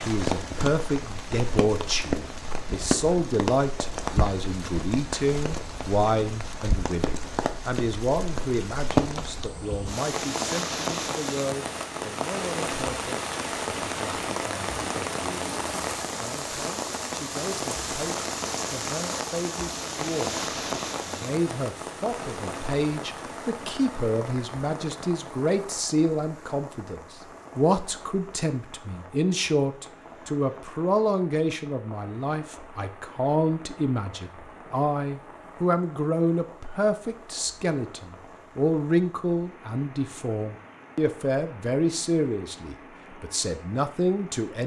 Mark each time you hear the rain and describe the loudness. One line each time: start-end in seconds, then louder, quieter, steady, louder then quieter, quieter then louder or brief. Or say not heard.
0.0-44.6 quieter.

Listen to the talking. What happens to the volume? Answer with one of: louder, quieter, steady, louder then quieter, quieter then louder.
quieter then louder.